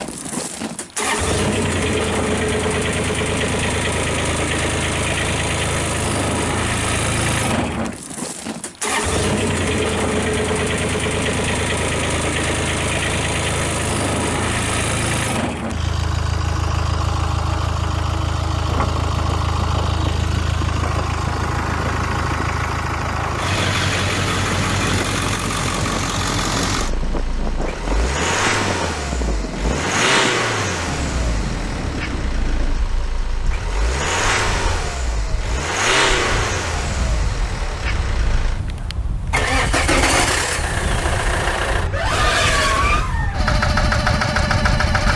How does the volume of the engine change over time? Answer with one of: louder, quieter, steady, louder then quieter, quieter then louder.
steady.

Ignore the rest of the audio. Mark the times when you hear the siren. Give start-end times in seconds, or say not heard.
not heard.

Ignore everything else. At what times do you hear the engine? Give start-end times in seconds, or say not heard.
0.0-45.1.